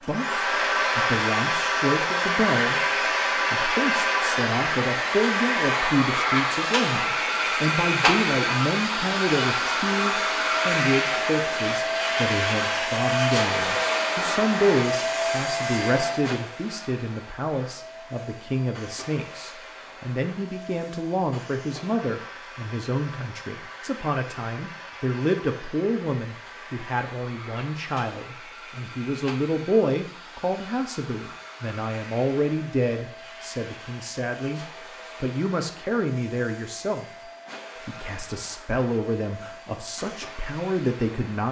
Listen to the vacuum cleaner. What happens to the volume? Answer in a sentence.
The loudness of the vacuum cleaner goes down.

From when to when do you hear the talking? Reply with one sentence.
You can hear the talking from 0.1 to 34.6 s, from 35.2 to 37.0 s and from 37.9 to 41.4 s.